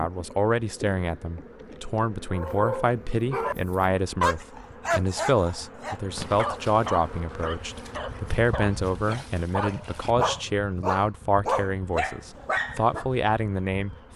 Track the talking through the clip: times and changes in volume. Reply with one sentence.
You can hear the talking from 0.0 to 13.9 s, at a steady volume.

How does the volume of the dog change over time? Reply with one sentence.
The loudness of the dog goes down, then up.